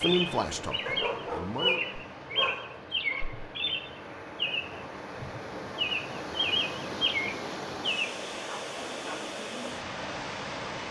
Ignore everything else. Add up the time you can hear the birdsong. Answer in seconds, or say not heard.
8 s.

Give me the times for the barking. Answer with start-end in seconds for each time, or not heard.
0.8-3.2, 8.4-9.2.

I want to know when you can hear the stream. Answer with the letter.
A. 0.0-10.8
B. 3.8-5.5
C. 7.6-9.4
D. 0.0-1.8
A.